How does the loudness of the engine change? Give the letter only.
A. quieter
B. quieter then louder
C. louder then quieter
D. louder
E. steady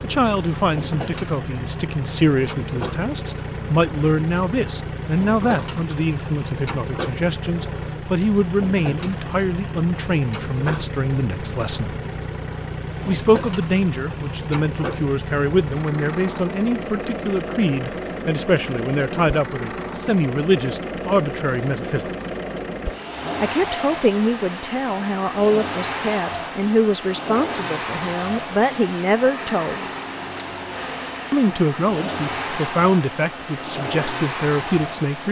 E.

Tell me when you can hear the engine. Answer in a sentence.
You can hear the engine from 0.0 to 35.2 s.